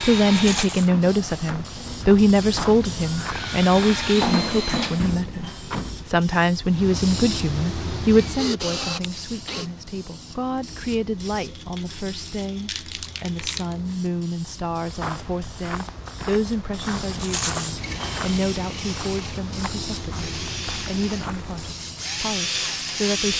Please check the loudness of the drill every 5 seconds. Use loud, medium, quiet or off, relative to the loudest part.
loud, loud, off, medium, loud.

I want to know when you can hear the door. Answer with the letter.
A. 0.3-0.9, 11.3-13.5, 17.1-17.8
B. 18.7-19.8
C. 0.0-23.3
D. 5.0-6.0
D.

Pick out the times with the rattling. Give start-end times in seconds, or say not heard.
0.3-0.9, 11.3-13.5, 17.1-17.8.